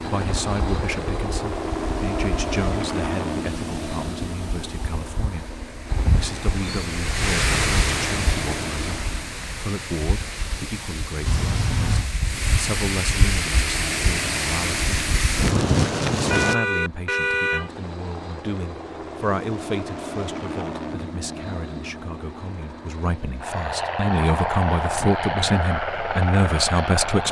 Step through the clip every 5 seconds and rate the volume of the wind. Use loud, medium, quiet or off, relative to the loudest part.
quiet, medium, medium, loud, off, off.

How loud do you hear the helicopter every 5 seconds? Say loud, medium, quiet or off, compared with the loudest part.
loud, medium, medium, medium, loud, loud.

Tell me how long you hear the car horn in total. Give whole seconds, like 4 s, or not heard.
2 s.